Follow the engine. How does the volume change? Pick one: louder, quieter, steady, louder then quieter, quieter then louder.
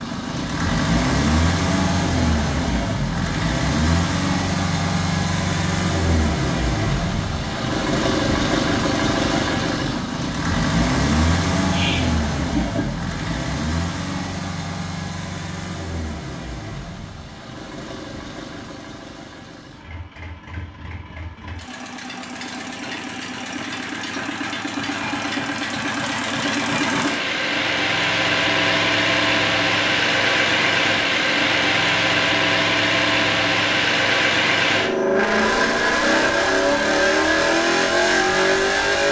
quieter then louder.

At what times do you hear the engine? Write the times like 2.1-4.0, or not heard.
0.0-39.0.